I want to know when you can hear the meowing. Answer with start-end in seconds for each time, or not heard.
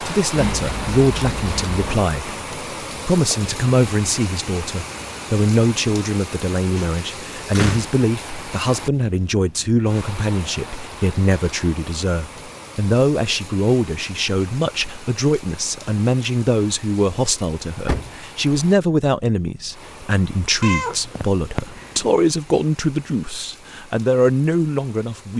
0.3-2.1, 20.6-22.1.